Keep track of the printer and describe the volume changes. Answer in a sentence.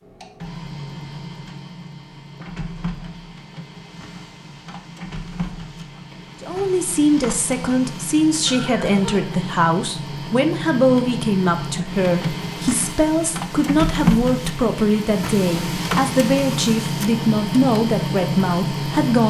The volume of the printer goes up.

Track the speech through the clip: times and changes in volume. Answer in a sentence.
You can hear the speech from 6.4 to 19.2 s, at a steady volume.